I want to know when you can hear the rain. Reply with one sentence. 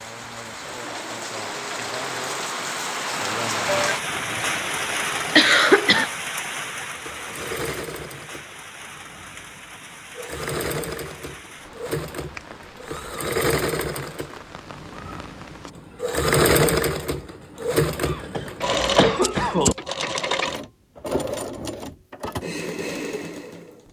The rain can be heard from 0.0 to 15.7 s.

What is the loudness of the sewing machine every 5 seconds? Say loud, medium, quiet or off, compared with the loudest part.
quiet, quiet, medium, loud, medium.